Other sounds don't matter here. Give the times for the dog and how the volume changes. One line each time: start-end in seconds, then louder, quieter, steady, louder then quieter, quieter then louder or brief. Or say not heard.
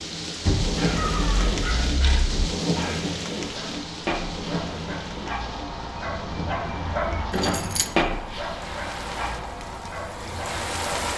0.8-11.1 louder then quieter.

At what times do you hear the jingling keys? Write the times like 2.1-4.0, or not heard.
0.5-2.5, 7.3-7.9.